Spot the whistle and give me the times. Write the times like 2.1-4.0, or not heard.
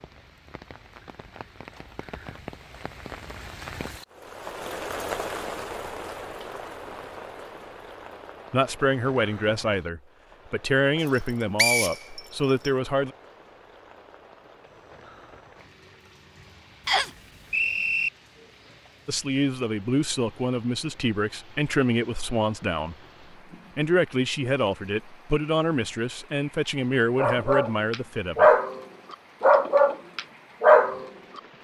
11.1-12.7, 16.9-18.1.